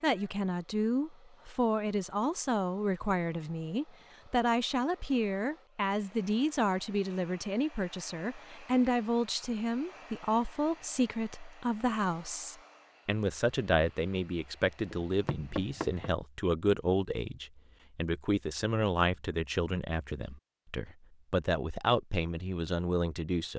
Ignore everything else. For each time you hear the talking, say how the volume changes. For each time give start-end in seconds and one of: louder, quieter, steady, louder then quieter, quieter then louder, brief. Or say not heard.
0.0-23.5 steady.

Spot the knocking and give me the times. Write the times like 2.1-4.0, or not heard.
14.8-16.1.